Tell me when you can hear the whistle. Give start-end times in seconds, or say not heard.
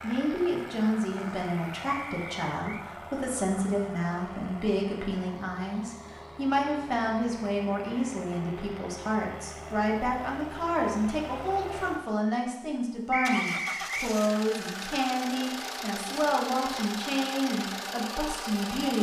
1.9-2.9, 13.1-14.1.